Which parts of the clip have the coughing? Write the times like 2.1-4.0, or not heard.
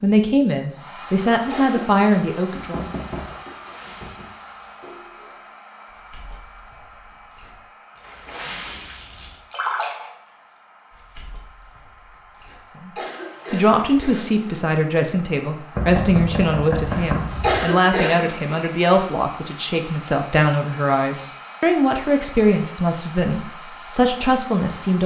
1.0-1.9, 12.4-14.3, 16.9-18.6.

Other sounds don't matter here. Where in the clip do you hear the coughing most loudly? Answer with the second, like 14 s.
18 s.